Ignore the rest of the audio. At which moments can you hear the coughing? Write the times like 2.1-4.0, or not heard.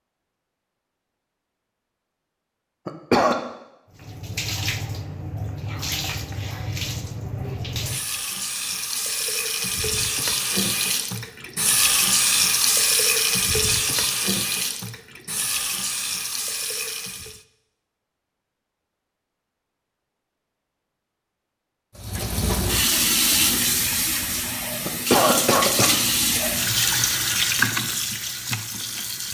2.9-3.4, 24.9-25.9.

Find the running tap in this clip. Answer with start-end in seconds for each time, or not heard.
3.9-17.4, 21.9-29.2.